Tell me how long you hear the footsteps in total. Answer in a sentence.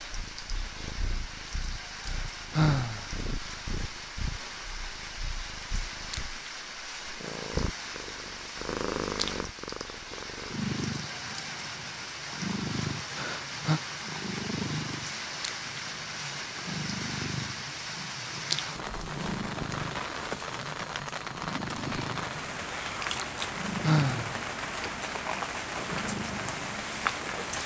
The footsteps can't be heard in this clip.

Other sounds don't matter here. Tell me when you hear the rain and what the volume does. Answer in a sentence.
The rain can be heard from 0.0 to 27.6 s, getting louder.